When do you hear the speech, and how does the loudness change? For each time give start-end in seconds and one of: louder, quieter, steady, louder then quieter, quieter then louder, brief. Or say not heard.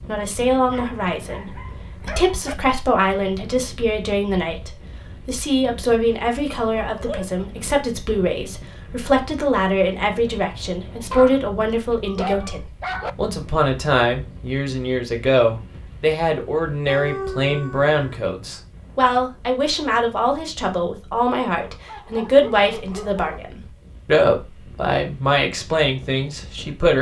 0.1-26.9 steady.